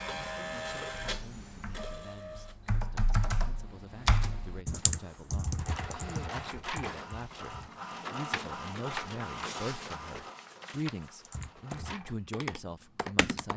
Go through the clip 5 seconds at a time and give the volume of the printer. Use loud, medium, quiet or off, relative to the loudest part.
loud, loud, medium.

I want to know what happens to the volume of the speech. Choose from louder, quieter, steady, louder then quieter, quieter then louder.
louder.